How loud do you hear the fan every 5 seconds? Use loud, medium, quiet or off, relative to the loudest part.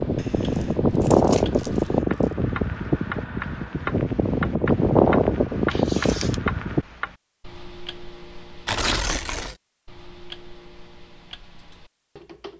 loud, loud, off.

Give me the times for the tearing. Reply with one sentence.
The tearing can be heard from 0.2 to 1.7 s, from 5.7 to 6.3 s and from 8.7 to 9.6 s.